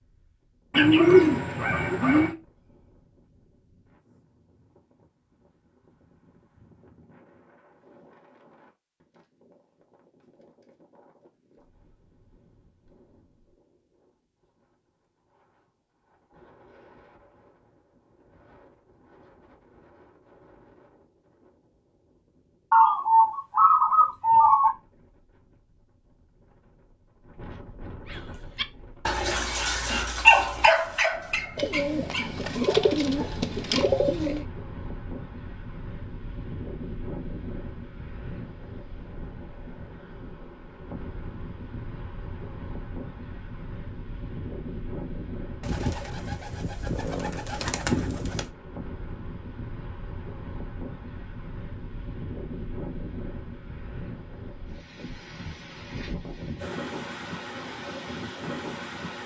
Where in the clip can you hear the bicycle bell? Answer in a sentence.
You can't hear the bicycle bell here.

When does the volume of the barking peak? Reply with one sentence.
The loudest moment of the barking is at 30 seconds.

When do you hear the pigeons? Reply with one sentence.
The pigeons can be heard from 0.7 to 2.4 s, from 22.7 to 24.8 s, from 31.6 to 34.5 s and from 45.6 to 48.5 s.